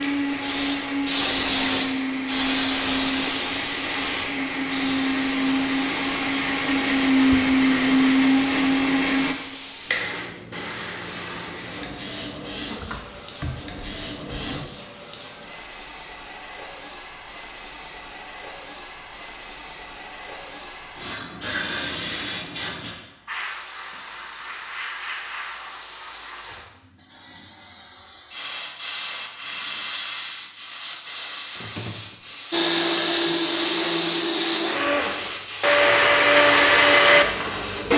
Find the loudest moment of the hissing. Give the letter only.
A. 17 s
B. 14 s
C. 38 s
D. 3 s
D.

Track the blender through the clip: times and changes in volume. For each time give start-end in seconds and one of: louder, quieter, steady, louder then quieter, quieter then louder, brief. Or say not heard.
0.0-9.3 louder
32.5-37.9 louder.